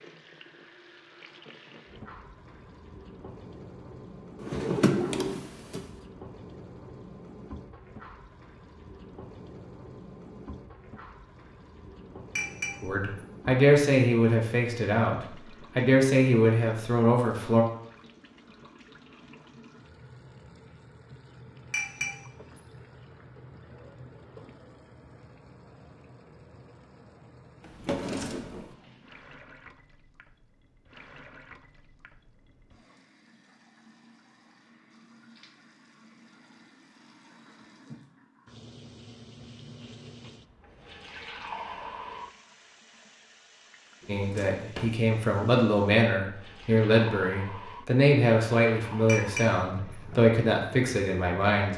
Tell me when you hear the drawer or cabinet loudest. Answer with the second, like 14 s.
5 s.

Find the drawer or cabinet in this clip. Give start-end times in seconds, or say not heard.
4.4-5.8, 27.6-28.7, 44.0-45.0.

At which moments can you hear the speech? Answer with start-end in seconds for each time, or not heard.
12.8-17.6, 44.0-51.7.